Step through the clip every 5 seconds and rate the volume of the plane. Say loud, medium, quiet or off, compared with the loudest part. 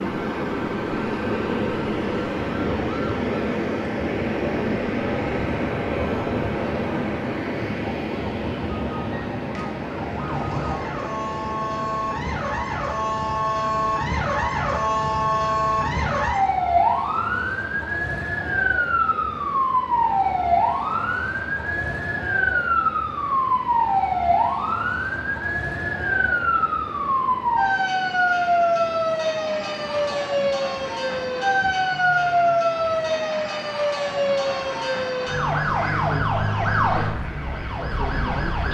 loud, loud, medium, quiet, quiet, quiet, quiet, quiet.